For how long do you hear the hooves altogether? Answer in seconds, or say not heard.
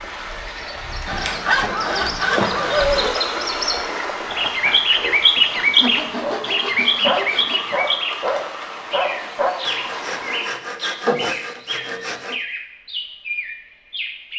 not heard.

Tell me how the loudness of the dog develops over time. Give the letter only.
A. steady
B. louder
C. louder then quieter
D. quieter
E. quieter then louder
E.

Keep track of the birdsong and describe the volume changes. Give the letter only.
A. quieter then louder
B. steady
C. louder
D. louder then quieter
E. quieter
D.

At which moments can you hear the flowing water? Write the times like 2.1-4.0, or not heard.
0.0-10.6.